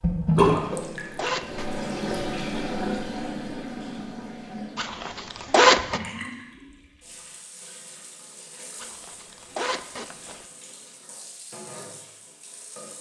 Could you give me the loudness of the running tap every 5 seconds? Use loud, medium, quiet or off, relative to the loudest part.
loud, quiet, quiet.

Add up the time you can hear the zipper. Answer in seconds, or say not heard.
4 s.